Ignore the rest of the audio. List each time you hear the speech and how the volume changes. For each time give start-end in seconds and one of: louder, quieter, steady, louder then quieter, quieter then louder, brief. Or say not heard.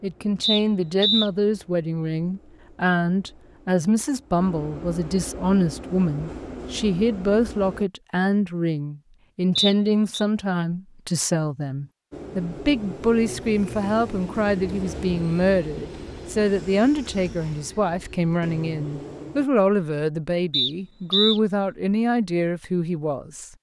0.0-23.5 steady.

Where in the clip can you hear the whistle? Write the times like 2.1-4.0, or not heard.
0.4-1.3, 9.6-10.2, 20.5-21.4.